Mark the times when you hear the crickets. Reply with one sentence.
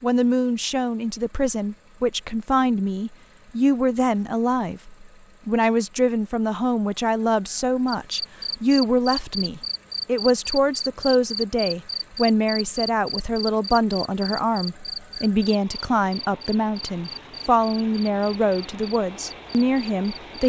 You can hear the crickets from 7.8 to 20.4 s.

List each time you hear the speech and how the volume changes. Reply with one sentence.
You can hear the speech from 0.0 to 20.4 s, at a steady volume.